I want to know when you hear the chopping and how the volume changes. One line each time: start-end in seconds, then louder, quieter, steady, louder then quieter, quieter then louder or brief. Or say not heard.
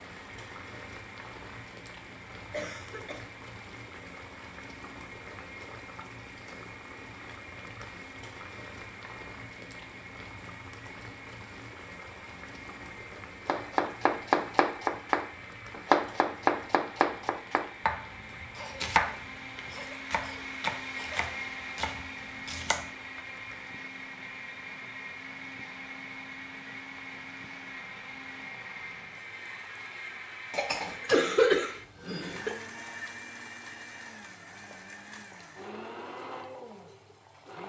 13.4-23.2 quieter.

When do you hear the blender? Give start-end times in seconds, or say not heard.
0.0-37.6.